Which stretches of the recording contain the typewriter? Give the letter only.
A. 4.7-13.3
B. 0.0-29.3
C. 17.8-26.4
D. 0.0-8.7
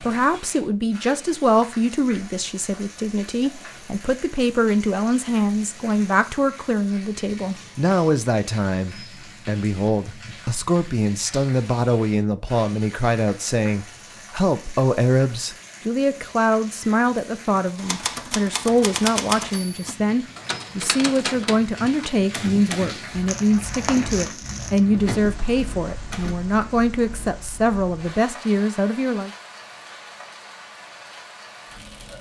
C.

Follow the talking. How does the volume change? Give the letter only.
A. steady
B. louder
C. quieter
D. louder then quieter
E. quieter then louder
A.